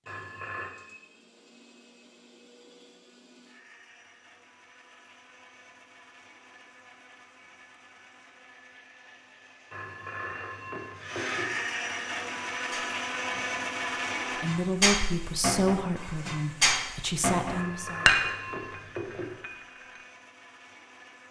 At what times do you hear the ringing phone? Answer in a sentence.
You can hear the ringing phone from 0.1 to 0.7 s, from 9.7 to 11.6 s and from 17.5 to 19.4 s.